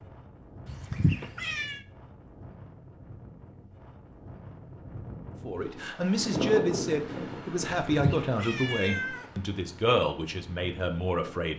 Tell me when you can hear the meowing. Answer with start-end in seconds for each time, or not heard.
0.7-1.8, 7.9-9.2.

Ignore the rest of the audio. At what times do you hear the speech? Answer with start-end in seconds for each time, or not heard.
5.5-11.5.